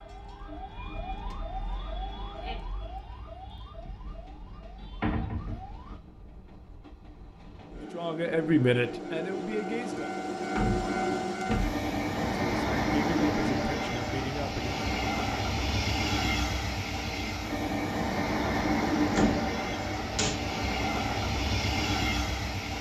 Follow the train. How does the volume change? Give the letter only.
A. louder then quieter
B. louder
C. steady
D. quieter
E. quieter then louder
B.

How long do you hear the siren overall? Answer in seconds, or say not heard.
6 s.